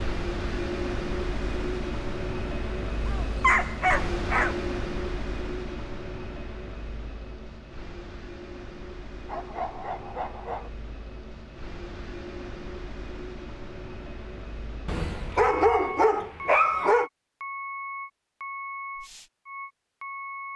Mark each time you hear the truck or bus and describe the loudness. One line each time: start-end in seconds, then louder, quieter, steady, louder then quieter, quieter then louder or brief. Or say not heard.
0.0-20.5 quieter then louder.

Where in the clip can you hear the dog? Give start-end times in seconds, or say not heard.
3.0-4.6, 9.2-10.7, 14.8-17.1.